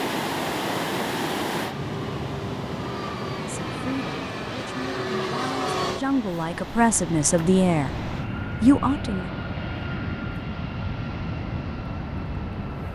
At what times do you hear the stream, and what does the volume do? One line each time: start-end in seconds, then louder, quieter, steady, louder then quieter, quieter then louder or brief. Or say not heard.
0.0-8.3 quieter.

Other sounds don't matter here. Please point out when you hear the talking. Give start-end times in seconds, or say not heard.
3.4-9.2.